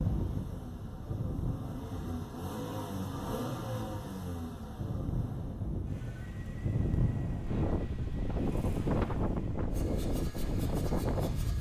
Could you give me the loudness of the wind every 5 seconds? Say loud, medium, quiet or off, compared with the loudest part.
medium, loud, loud.